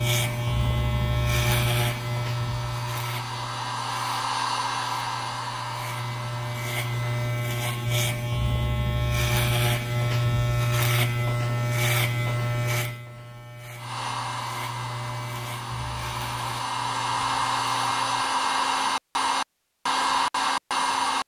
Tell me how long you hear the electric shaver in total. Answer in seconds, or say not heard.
18 s.